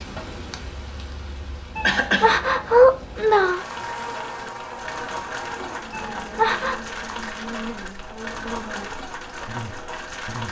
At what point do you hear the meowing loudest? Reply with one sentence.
The volume of the meowing peaks at 3 seconds.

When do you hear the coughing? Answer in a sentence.
The coughing can be heard from 1.8 to 2.4 s.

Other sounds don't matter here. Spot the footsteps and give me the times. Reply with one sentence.
You can't hear the footsteps here.